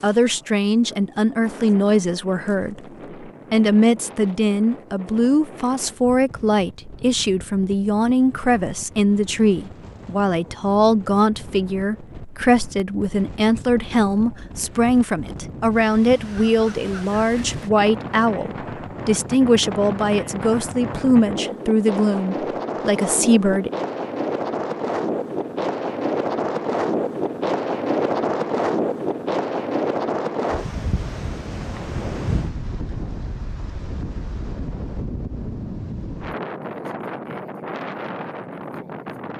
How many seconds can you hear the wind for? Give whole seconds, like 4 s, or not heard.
39 s.